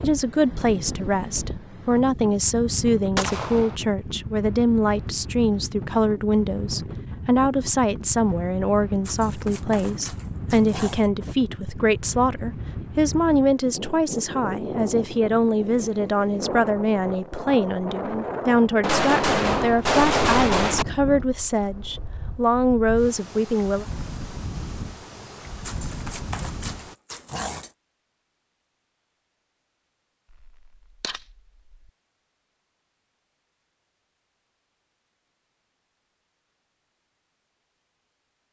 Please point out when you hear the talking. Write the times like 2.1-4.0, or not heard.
0.0-23.9.